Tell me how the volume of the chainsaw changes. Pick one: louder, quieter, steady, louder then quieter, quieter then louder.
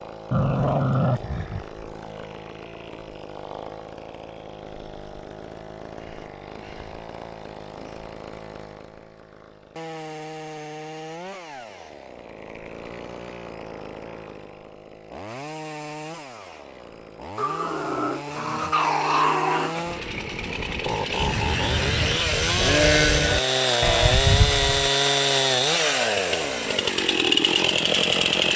louder.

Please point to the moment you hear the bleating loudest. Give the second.
23 s.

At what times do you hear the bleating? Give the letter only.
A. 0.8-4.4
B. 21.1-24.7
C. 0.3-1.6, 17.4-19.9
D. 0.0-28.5
B.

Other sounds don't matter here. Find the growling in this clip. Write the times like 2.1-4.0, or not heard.
0.3-1.6, 17.4-19.9.